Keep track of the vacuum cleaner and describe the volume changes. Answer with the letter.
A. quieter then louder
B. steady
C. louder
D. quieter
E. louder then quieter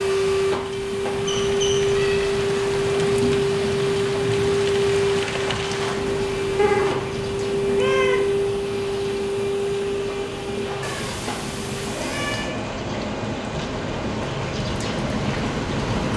D.